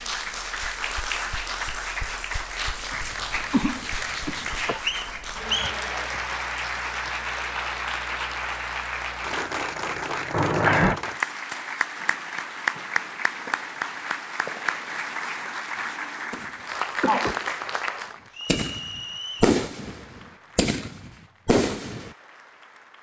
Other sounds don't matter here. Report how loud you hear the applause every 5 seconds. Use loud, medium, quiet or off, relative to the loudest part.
loud, loud, loud, loud, quiet.